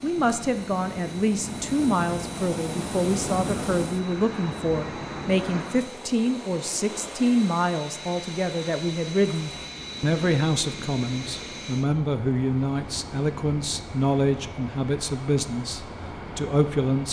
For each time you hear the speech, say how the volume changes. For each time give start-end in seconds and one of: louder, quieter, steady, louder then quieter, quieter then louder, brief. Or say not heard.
0.0-17.0 steady.